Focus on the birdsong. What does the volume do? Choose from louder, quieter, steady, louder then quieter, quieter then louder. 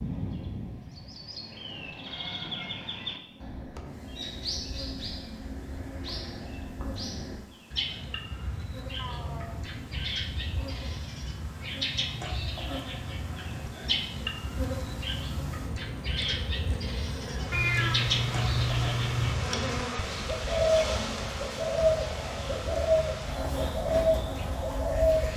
louder.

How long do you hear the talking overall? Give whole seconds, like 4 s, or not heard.
not heard.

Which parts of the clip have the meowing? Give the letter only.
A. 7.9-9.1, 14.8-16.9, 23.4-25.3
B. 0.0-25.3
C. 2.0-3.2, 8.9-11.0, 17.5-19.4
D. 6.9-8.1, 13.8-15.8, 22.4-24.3
C.